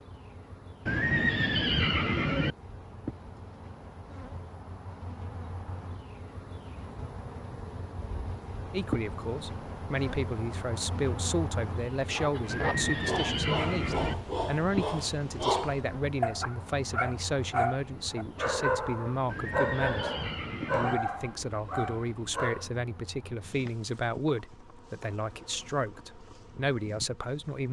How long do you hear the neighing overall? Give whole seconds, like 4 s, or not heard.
5 s.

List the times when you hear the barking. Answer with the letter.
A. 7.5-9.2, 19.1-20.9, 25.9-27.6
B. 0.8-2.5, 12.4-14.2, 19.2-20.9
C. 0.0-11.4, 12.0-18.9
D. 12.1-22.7
D.